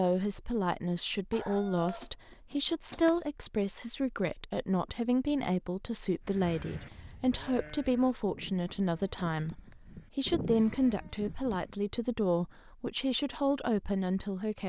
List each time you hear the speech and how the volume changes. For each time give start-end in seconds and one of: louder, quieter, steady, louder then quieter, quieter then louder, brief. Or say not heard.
0.0-14.6 steady.